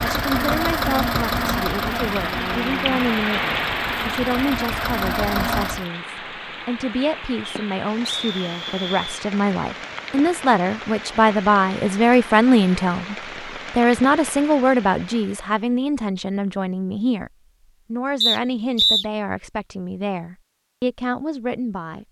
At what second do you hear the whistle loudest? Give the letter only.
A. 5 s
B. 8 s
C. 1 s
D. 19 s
D.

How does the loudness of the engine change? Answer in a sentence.
The volume of the engine goes down, then up.